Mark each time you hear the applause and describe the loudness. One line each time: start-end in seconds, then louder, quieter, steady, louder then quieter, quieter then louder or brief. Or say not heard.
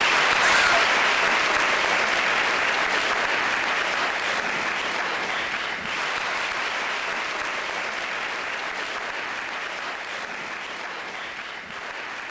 0.0-12.2 quieter.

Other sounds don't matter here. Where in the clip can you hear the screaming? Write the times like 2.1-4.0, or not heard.
0.4-0.9.